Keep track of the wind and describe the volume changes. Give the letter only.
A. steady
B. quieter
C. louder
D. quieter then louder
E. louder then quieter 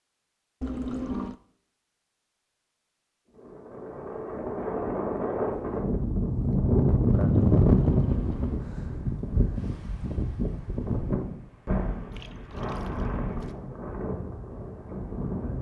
E.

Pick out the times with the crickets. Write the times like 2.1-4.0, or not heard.
not heard.